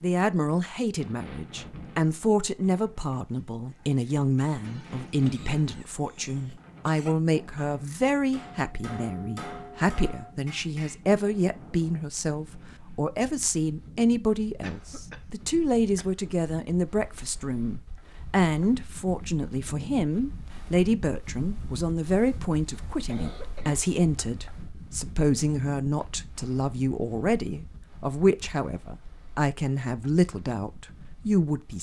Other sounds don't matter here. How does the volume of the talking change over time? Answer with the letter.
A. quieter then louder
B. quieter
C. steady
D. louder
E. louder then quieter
C.